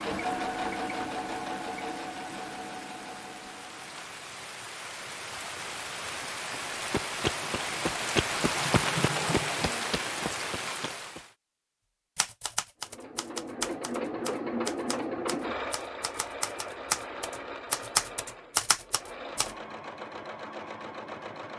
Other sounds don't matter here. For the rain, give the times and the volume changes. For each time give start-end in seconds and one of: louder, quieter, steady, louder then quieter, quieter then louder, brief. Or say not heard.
0.0-11.3 louder.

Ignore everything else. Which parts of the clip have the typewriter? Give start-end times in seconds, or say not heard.
12.2-19.5.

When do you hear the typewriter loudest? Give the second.
18 s.